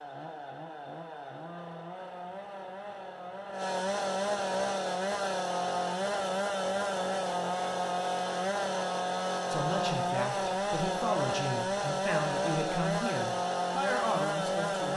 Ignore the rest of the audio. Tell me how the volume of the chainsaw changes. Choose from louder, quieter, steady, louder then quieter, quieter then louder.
louder.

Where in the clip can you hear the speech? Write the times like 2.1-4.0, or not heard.
9.5-14.9.